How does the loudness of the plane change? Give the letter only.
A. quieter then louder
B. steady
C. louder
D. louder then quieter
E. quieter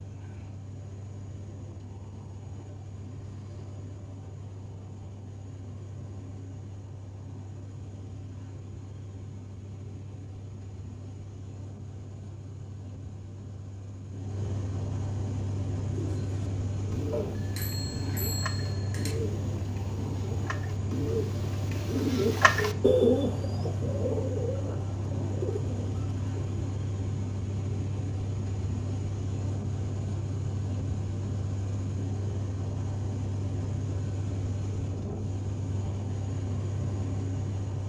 C.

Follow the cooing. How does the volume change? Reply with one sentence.
The volume of the cooing goes up, then down.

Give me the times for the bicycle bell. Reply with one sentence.
The bicycle bell can be heard from 17.1 to 19.1 s.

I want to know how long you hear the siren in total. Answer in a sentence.
The siren can't be heard in this clip.